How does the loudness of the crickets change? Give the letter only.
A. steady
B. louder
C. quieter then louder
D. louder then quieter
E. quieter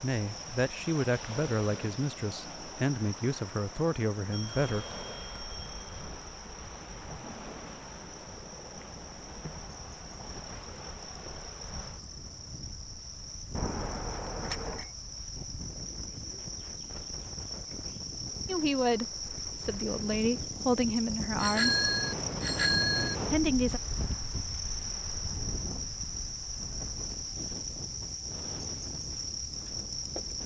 B.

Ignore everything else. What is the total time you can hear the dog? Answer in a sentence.
You can't hear the dog here.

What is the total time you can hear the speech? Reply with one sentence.
The speech can be heard for 9 seconds in total.